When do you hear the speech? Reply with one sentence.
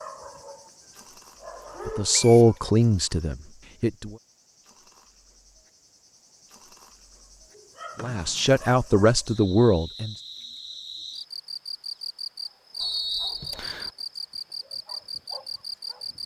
You can hear the speech from 1.9 to 4.2 s and from 8.0 to 10.2 s.